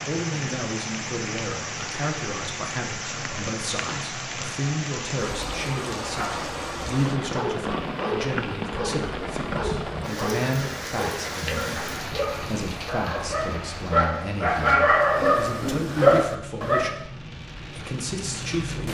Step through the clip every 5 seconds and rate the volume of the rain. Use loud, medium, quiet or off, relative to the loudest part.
loud, loud, loud, medium.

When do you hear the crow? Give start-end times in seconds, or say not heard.
not heard.